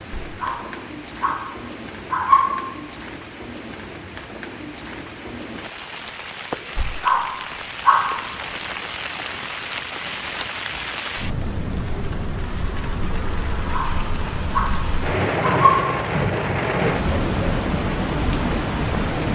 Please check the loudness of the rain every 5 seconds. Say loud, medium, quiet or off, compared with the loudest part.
quiet, medium, medium, loud.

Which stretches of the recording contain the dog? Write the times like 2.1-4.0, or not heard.
0.2-2.8, 6.8-8.4, 13.7-15.9.